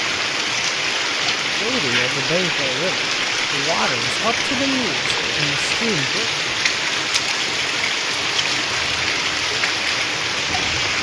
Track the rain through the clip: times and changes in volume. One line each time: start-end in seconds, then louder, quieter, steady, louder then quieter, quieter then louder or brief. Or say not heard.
0.0-10.9 steady.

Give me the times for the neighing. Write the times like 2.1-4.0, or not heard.
not heard.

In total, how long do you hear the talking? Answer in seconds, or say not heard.
5 s.